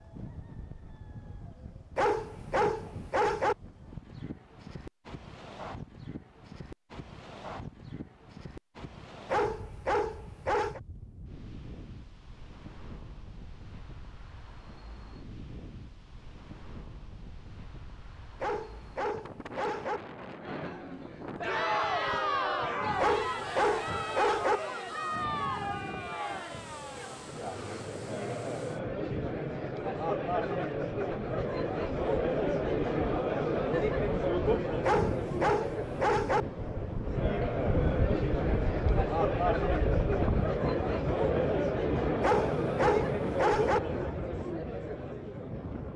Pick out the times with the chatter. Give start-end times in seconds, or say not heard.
20.4-45.9.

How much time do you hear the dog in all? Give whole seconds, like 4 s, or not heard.
10 s.